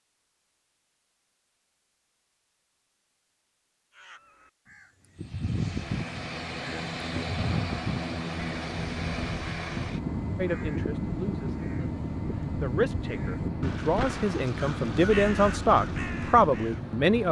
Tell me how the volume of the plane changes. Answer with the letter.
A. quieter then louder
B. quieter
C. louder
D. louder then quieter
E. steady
E.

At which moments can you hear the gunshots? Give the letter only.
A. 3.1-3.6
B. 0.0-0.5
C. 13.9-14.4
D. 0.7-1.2
C.